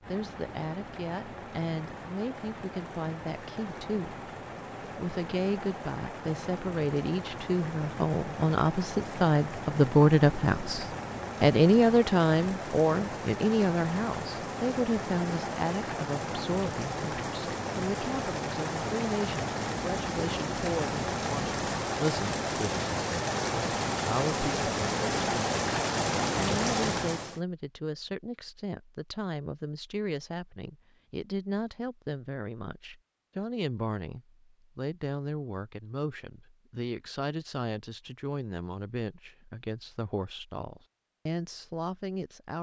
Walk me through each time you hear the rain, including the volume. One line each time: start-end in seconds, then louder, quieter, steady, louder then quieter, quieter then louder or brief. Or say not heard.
0.0-27.4 louder.